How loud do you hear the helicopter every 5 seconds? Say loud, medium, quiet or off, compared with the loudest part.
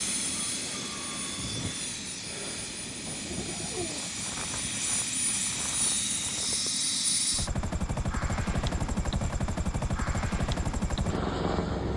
medium, loud, loud.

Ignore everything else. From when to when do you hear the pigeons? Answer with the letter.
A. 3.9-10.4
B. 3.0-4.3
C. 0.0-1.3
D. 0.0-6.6
B.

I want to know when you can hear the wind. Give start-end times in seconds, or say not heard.
0.0-6.6.